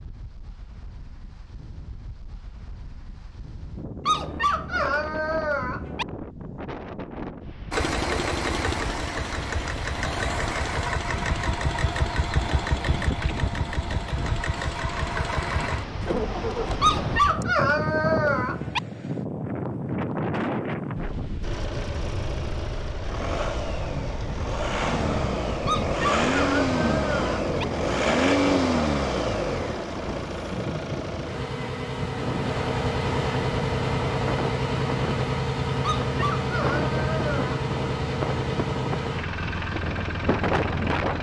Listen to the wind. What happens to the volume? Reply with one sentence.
The loudness of the wind goes up.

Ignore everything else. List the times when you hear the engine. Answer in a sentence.
You can hear the engine from 7.7 to 16.8 s and from 21.4 to 41.1 s.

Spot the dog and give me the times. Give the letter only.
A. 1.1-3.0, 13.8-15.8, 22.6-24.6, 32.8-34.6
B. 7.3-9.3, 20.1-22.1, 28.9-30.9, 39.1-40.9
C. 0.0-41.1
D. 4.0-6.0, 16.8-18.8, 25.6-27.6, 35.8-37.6
D.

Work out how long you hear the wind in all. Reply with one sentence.
You can hear the wind for 41 seconds altogether.